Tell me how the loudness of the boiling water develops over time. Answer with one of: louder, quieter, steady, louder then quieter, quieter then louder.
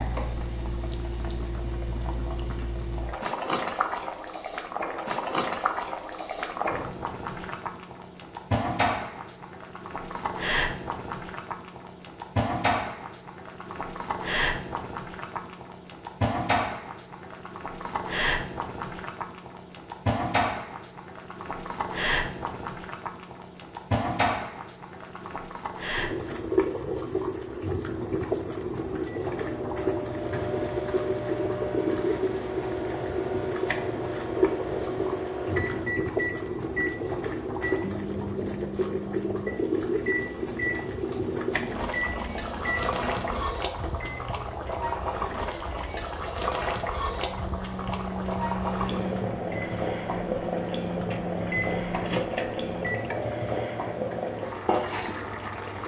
steady.